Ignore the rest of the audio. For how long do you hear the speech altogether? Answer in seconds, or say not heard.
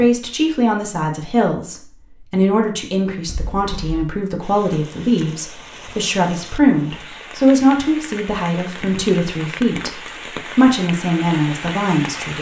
12 s.